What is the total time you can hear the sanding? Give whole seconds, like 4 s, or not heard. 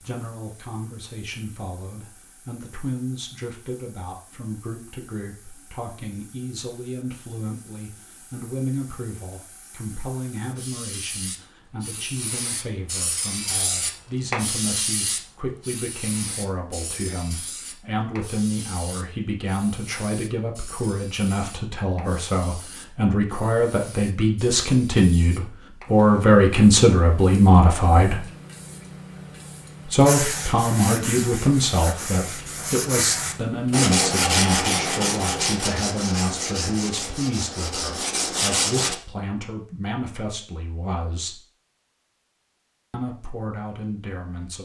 9 s.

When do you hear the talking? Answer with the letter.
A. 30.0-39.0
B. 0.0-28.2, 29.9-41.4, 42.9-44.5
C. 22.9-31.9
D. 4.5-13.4
B.